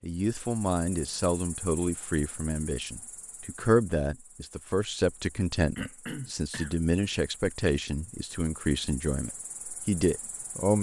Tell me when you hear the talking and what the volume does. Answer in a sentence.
You can hear the talking from 0.0 to 10.7 s, at a steady volume.